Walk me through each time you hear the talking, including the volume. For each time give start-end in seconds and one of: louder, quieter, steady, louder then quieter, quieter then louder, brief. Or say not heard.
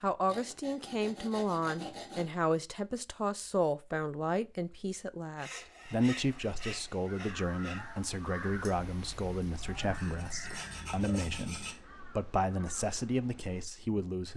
0.0-14.3 steady.